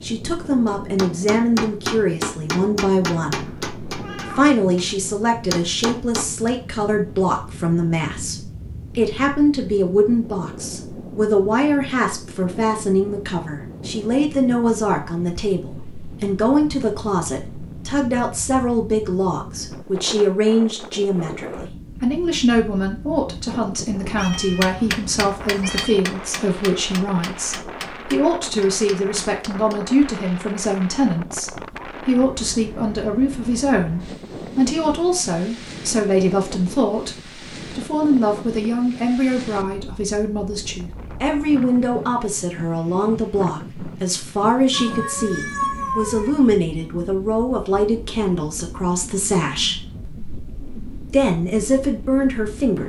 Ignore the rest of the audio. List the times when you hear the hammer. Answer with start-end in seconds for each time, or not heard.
0.8-6.5, 24.3-29.8.